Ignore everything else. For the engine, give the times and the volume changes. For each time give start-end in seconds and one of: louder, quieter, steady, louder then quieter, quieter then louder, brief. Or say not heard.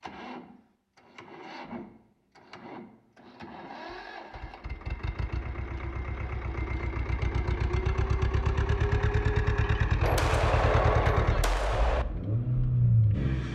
0.0-13.5 louder.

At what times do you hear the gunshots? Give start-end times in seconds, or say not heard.
10.0-12.1.